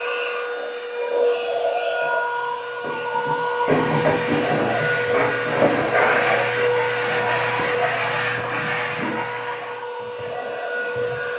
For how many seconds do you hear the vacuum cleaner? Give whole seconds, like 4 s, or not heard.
11 s.